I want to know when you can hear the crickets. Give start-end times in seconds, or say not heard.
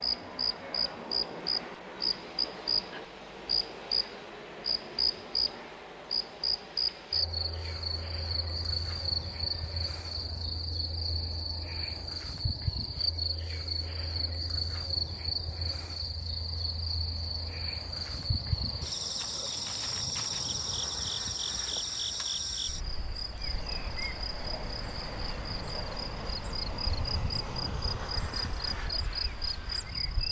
0.0-30.2.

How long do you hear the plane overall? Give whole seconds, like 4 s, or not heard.
30 s.